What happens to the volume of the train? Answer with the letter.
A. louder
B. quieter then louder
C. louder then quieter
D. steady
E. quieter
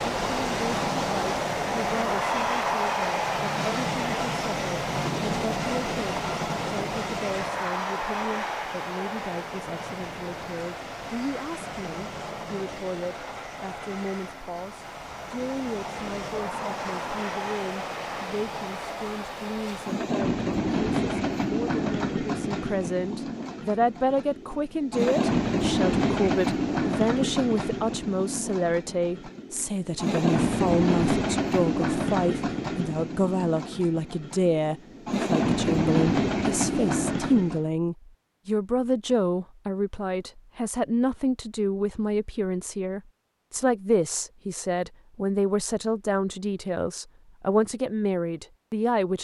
B.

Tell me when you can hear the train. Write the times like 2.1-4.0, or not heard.
0.0-37.7.